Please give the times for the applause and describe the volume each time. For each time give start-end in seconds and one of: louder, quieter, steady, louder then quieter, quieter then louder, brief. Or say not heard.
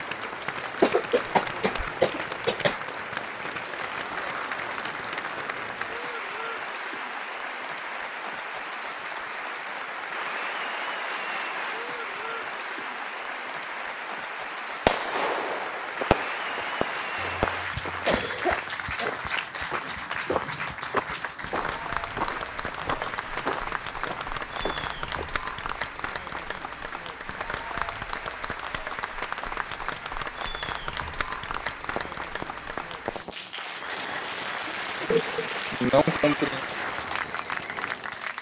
0.0-38.3 steady.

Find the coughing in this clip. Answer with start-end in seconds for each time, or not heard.
0.8-2.8, 17.1-19.1, 34.6-36.6.